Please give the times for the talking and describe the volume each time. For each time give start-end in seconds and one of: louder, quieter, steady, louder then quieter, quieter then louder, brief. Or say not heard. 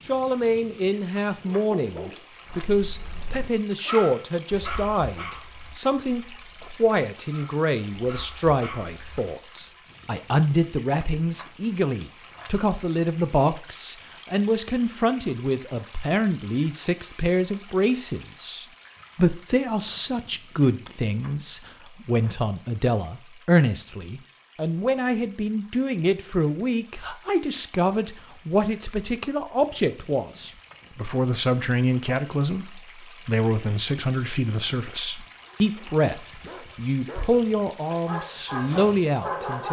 0.1-39.6 steady.